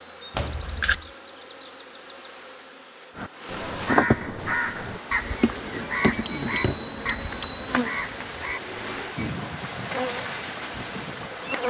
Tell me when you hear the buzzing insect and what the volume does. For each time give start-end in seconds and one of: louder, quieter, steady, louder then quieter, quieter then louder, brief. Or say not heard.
0.0-11.6 louder then quieter.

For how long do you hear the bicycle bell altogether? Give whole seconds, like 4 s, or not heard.
2 s.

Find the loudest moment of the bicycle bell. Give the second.
1 s.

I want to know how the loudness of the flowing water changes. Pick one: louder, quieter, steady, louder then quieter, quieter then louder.
louder.